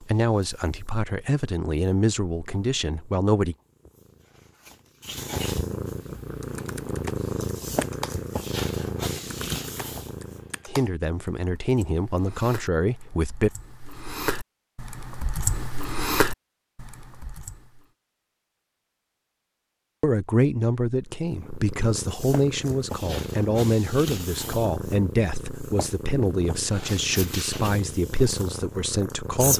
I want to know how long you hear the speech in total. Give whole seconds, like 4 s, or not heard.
16 s.